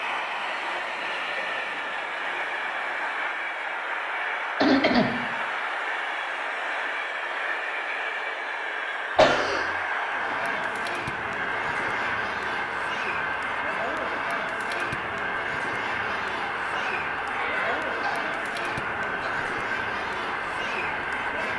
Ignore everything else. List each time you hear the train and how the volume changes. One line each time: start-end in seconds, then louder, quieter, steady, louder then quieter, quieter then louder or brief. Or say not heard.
0.0-21.5 steady.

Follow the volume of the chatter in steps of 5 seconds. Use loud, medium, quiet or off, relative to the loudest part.
off, off, loud, loud, loud.